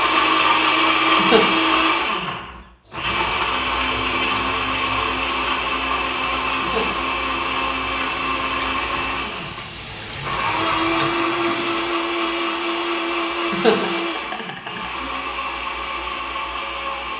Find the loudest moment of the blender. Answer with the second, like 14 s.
1 s.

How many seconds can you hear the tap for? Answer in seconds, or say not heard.
9 s.